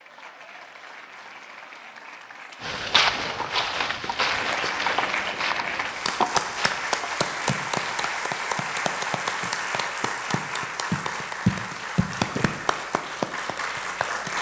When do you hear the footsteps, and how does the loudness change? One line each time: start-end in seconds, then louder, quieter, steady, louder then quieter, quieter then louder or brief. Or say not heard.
2.6-8.1 quieter.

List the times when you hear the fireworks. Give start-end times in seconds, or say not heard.
not heard.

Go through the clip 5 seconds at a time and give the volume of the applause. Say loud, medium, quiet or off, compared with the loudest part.
medium, loud, loud.